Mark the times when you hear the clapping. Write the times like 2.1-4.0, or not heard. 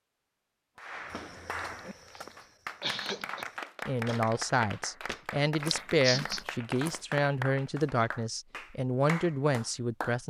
0.8-10.2.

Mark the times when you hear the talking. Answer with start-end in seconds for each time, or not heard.
3.9-10.2.